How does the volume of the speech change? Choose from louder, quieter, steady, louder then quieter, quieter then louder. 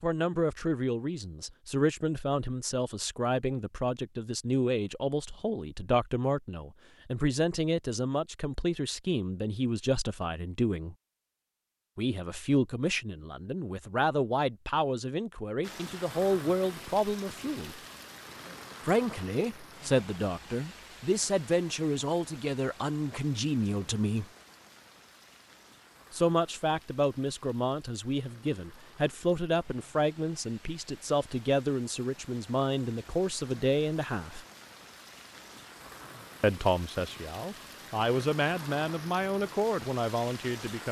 steady.